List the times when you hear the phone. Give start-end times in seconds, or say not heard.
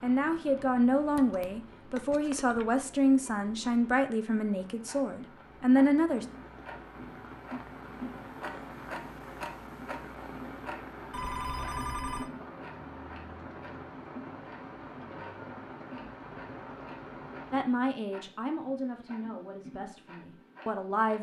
1.1-2.6, 11.1-12.3.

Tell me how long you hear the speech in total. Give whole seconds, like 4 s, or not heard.
10 s.